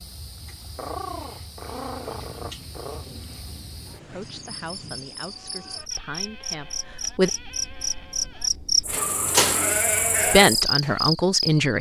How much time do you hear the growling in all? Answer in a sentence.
The growling can be heard for 3 seconds in total.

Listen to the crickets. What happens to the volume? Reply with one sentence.
The volume of the crickets goes up.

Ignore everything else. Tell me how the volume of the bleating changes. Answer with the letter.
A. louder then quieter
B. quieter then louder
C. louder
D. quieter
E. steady
C.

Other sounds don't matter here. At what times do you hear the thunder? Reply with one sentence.
You can hear the thunder from 2.0 to 5.1 s.